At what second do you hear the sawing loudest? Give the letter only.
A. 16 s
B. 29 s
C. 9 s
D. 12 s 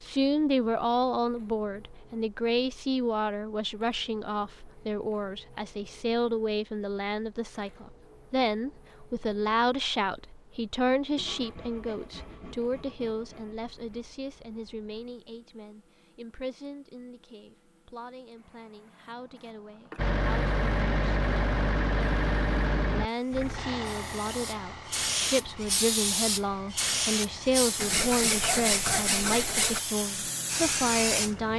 B.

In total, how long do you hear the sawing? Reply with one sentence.
The sawing can be heard for 5 seconds in total.